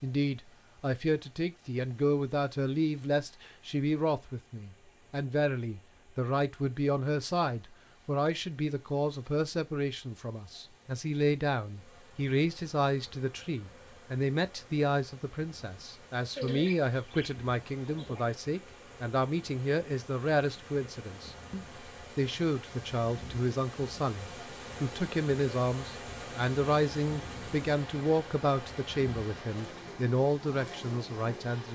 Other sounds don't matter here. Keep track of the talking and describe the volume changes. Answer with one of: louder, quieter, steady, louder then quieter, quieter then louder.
steady.